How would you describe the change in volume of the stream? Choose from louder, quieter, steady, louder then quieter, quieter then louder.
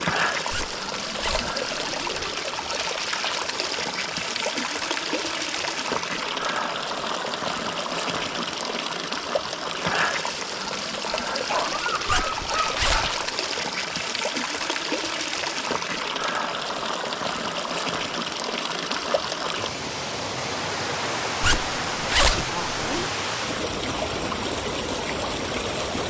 steady.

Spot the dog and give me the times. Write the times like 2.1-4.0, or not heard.
11.1-13.2.